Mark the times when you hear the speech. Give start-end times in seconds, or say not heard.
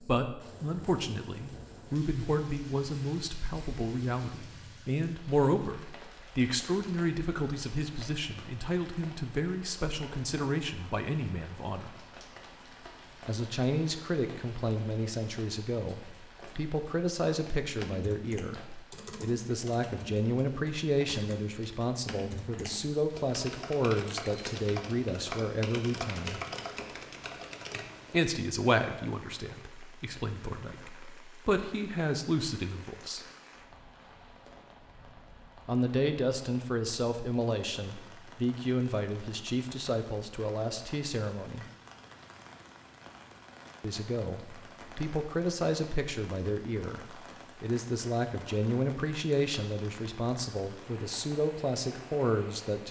0.0-11.9, 13.2-26.4, 28.1-33.2, 35.6-41.6, 43.8-52.8.